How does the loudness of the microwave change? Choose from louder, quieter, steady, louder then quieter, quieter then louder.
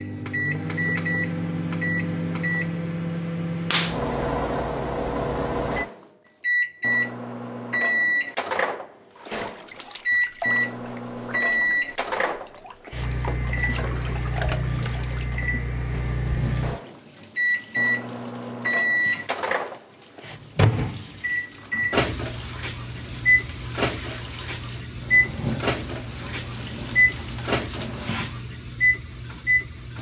steady.